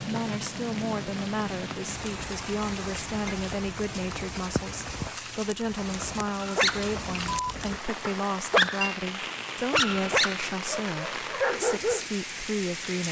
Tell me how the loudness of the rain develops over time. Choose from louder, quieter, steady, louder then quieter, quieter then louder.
steady.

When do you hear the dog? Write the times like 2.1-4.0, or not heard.
6.4-12.1.